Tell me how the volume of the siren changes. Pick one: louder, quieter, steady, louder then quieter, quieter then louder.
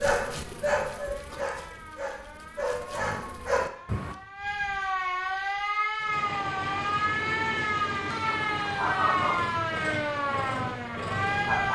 louder.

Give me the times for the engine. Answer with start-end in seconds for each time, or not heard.
6.0-11.7.